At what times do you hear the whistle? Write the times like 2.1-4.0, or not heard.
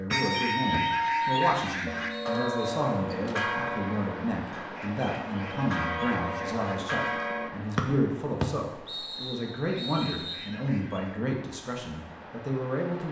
0.1-2.9, 7.8-10.5.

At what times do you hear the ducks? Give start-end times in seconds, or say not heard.
0.1-2.1, 4.8-6.8, 9.7-11.2.